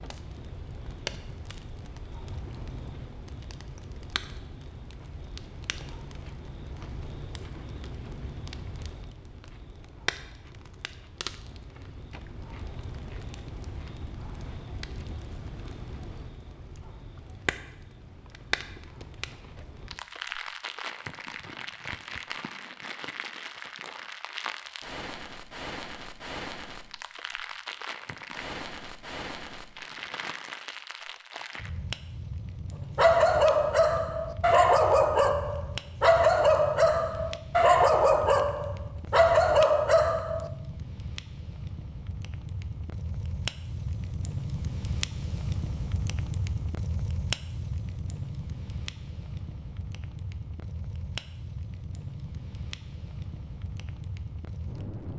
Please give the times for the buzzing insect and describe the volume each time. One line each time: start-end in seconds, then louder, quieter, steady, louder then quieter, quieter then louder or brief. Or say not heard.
not heard.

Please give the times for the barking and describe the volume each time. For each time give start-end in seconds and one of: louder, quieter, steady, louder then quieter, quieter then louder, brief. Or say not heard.
33.0-40.5 steady.